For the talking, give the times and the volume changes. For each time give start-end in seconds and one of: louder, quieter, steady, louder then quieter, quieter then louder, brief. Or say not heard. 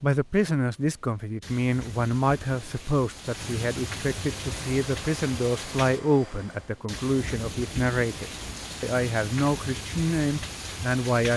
0.0-11.3 steady.